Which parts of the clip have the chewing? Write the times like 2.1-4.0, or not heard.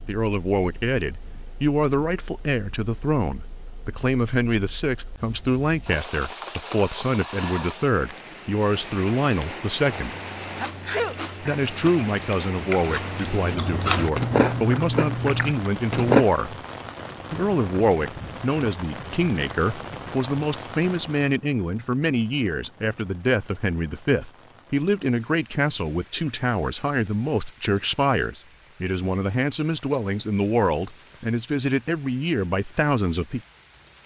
10.1-16.2.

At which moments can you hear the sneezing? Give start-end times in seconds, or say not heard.
10.6-11.6.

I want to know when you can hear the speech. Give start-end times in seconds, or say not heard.
0.1-10.2, 11.4-16.6, 17.3-33.4.